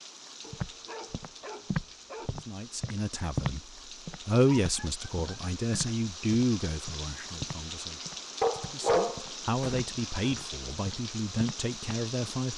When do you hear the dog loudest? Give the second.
9 s.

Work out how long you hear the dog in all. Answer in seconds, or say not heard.
5 s.